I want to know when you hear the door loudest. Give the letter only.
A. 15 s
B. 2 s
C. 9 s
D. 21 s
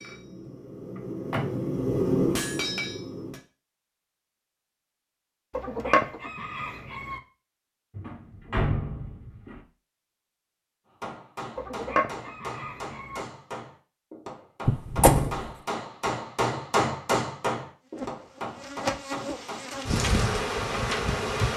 A.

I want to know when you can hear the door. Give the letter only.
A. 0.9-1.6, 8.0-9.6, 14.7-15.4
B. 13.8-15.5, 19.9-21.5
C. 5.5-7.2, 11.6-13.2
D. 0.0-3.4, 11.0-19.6
A.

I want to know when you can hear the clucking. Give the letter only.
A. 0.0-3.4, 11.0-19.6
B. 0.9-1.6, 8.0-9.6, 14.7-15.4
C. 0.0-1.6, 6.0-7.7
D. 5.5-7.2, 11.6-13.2
D.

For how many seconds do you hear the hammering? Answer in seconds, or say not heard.
12 s.